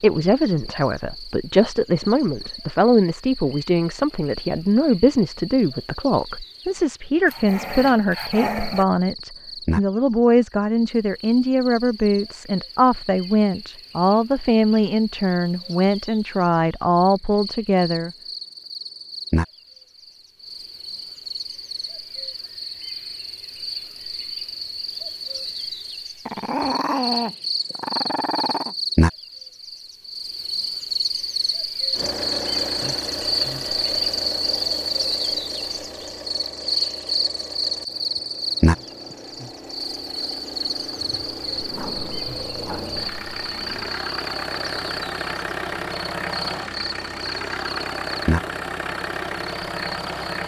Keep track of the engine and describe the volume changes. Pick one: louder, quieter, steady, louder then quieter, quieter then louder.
quieter then louder.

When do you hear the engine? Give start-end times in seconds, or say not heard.
31.9-50.4.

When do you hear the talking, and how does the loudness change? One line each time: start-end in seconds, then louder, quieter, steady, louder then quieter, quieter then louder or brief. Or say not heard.
0.0-18.1 steady.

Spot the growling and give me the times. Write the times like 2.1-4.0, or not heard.
7.2-8.8, 26.2-28.8, 41.6-44.0.